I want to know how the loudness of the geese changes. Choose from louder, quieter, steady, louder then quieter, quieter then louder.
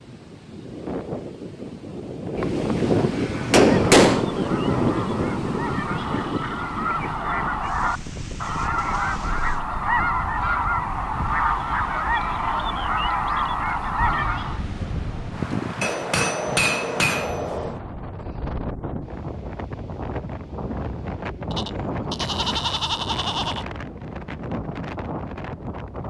louder.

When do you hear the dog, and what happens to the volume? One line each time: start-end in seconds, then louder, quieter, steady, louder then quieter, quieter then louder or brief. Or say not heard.
not heard.